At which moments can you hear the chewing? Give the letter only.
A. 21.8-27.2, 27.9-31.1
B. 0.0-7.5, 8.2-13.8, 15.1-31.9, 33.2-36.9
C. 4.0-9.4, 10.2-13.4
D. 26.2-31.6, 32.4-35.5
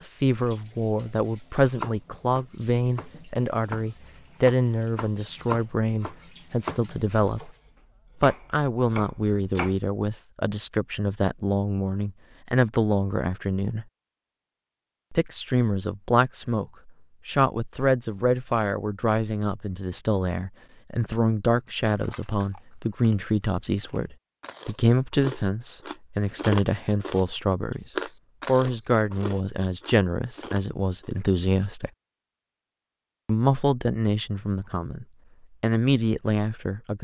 A.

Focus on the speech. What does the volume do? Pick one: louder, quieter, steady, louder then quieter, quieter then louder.
steady.